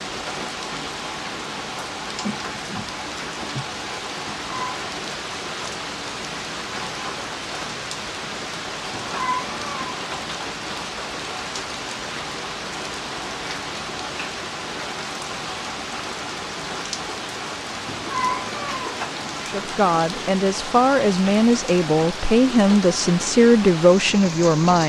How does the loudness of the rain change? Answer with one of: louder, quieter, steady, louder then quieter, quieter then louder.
steady.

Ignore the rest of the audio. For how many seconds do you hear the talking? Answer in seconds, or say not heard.
5 s.